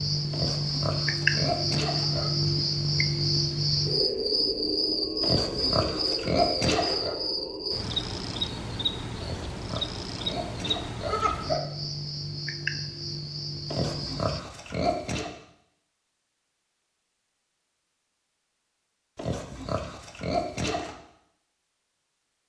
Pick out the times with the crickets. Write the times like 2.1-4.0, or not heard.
0.0-14.4.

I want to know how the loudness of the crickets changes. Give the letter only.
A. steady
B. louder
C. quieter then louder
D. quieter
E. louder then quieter
D.